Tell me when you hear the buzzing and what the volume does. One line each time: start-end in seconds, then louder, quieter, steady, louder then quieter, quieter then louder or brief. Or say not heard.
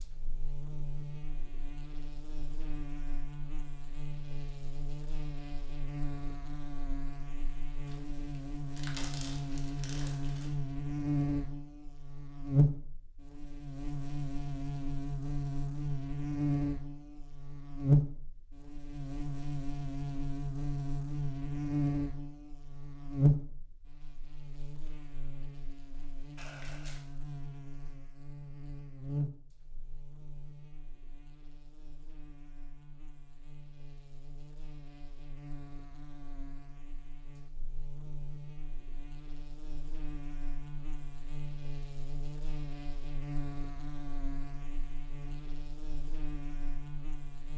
0.0-47.5 louder then quieter.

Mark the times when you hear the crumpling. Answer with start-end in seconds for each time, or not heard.
7.8-10.5, 26.4-27.1.